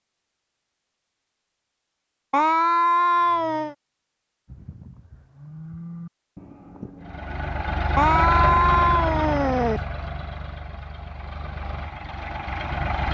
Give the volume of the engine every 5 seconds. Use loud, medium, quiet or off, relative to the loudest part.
off, loud, medium.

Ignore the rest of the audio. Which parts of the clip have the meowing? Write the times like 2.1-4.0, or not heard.
2.3-3.8, 8.0-9.8.